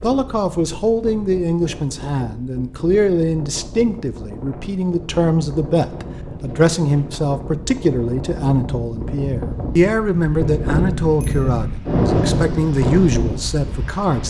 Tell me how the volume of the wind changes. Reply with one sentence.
The loudness of the wind goes up.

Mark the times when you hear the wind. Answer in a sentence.
You can hear the wind from 0.0 to 14.2 s.